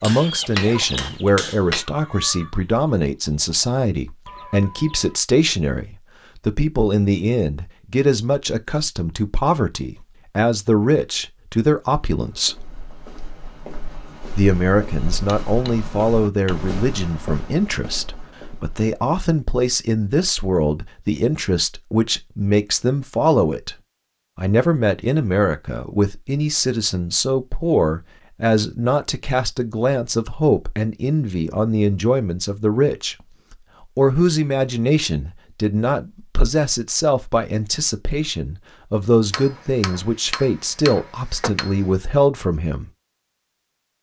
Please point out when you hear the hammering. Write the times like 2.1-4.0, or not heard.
0.0-1.9, 14.9-16.6, 39.3-41.9.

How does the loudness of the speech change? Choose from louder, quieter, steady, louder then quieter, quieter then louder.
steady.